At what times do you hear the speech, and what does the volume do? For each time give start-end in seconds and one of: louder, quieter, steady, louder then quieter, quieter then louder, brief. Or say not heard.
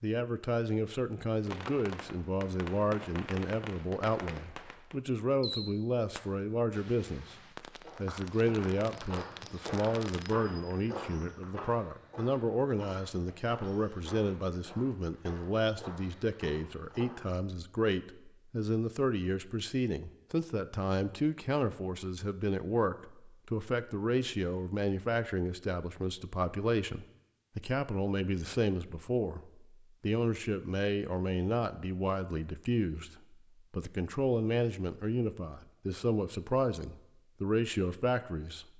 0.0-38.7 steady.